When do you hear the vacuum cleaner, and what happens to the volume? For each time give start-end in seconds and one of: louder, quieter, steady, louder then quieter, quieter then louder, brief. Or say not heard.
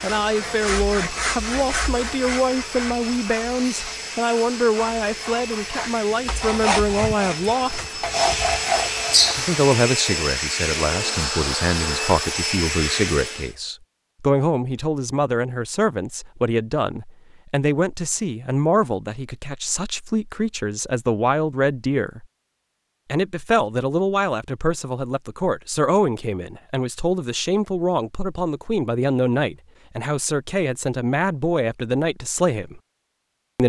0.0-13.6 louder.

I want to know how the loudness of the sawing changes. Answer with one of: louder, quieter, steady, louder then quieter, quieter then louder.
quieter then louder.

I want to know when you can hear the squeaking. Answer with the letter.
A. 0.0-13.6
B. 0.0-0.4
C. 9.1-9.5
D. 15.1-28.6
C.